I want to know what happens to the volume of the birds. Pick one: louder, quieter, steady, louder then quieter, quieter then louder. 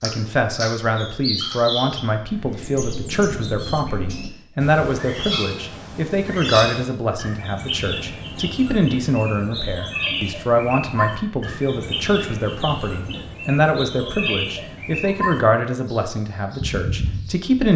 steady.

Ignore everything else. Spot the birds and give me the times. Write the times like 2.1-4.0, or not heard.
0.0-17.5.